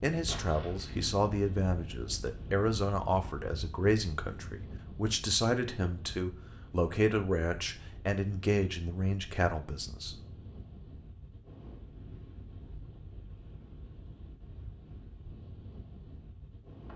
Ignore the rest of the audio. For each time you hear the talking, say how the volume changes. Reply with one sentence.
You can hear the talking from 0.0 to 10.2 s, at a steady volume.